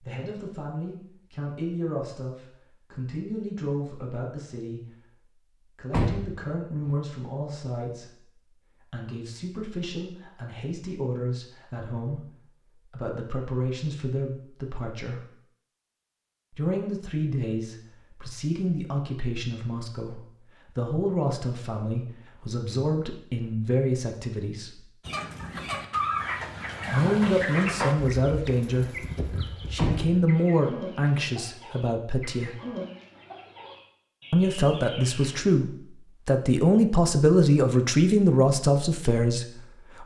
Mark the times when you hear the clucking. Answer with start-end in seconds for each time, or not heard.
25.1-35.4.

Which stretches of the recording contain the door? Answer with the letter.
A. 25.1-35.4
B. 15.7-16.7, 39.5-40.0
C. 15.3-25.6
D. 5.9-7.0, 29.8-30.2
D.